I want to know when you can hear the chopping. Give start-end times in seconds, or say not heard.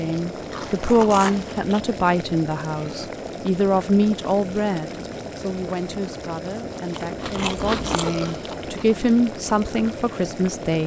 not heard.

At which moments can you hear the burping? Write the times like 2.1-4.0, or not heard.
2.7-3.2, 7.9-8.4.